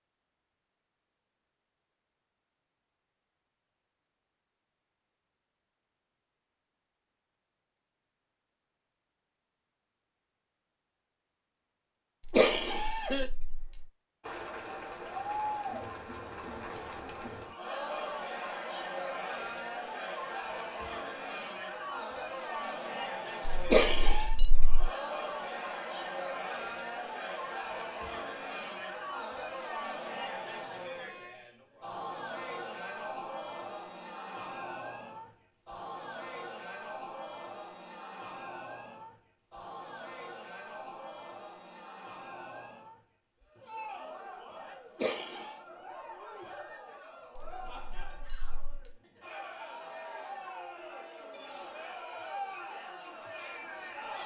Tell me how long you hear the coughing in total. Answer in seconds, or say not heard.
2 s.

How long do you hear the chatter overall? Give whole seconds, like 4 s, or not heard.
40 s.